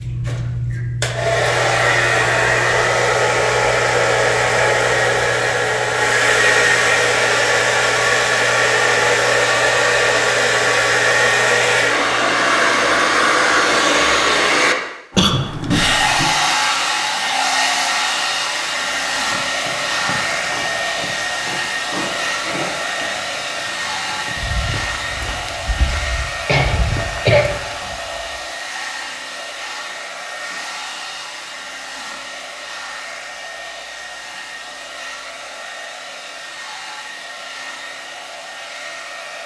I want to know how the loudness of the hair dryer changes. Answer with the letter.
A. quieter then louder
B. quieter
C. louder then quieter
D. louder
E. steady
B.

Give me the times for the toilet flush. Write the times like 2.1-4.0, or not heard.
not heard.